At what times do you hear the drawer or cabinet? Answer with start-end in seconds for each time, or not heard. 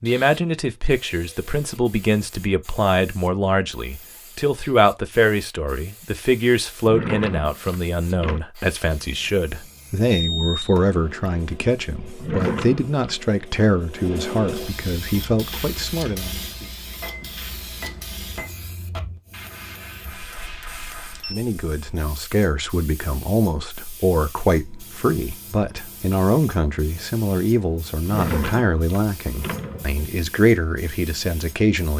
6.8-8.4, 12.2-13.2, 28.1-30.1.